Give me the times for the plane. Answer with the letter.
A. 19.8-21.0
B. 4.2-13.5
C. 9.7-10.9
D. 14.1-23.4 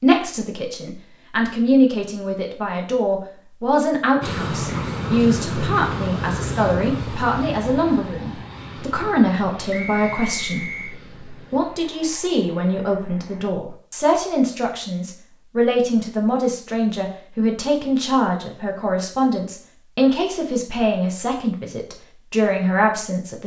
B.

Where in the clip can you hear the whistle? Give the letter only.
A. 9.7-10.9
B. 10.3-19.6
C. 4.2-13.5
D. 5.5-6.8
A.